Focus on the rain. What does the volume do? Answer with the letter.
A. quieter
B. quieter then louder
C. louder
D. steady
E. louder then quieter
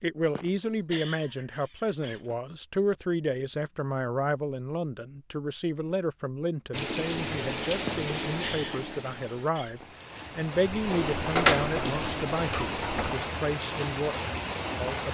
B.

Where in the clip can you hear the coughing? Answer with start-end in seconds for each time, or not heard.
0.3-2.4, 7.8-9.8.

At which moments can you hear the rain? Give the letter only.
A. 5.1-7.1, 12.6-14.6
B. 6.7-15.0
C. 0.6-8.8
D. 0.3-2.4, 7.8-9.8
B.